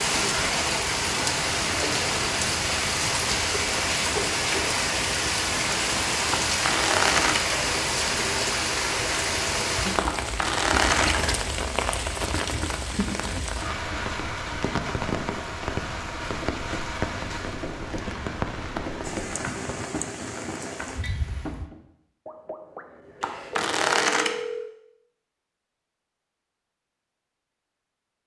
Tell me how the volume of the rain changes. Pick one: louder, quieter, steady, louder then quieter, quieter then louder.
quieter.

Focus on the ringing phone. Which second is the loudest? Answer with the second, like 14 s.
24 s.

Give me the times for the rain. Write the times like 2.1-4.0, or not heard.
0.0-21.7.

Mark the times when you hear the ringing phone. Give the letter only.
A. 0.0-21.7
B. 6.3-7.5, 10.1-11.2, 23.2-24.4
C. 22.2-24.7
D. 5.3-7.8
C.